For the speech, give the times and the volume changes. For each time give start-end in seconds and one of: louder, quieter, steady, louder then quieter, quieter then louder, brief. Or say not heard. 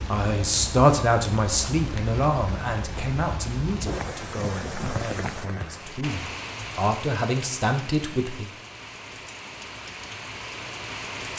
0.0-8.5 quieter then louder.